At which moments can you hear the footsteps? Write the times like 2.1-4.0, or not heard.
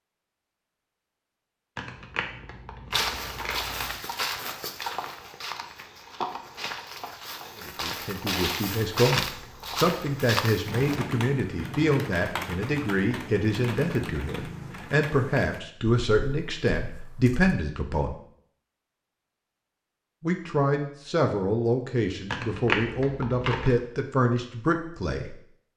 2.9-11.0.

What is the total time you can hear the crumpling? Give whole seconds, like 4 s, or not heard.
5 s.